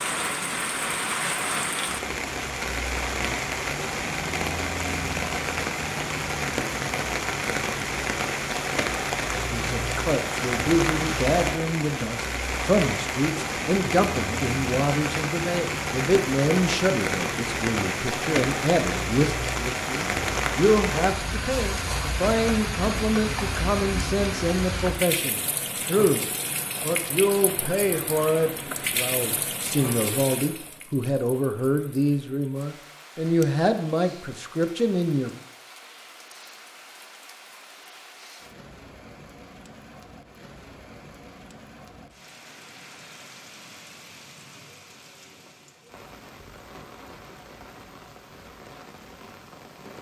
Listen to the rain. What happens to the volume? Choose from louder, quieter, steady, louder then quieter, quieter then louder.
quieter.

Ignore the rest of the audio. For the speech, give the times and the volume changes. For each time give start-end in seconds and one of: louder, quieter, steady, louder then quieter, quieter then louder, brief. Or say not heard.
9.5-35.3 steady.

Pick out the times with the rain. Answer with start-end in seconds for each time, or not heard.
0.0-49.9.